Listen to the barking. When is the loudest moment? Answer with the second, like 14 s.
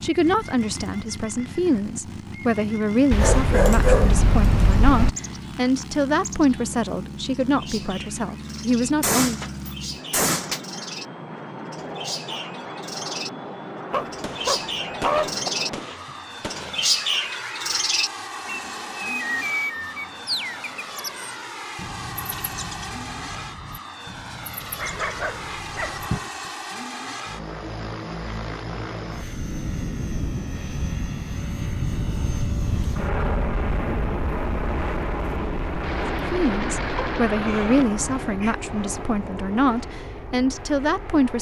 4 s.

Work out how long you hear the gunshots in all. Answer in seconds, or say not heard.
6 s.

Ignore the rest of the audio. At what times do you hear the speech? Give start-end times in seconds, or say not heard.
0.0-9.4, 36.3-41.3.